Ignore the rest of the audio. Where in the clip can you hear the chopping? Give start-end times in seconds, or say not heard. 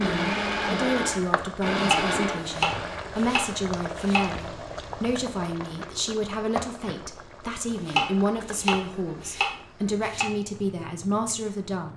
1.7-4.5, 7.7-10.2.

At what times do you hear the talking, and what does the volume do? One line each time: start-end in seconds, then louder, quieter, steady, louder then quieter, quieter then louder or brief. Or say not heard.
0.0-11.9 steady.